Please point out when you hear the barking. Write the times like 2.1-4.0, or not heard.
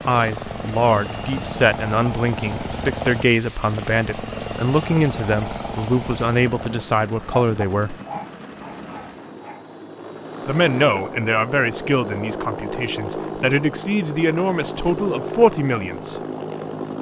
7.4-9.7.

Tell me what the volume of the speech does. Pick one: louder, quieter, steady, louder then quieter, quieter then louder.
steady.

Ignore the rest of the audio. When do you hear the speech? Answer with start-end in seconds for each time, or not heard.
0.1-8.0, 10.4-16.1.